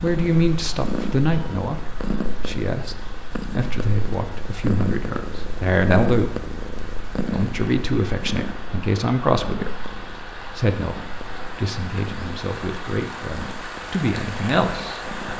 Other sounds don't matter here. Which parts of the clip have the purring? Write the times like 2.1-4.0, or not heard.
0.0-15.3.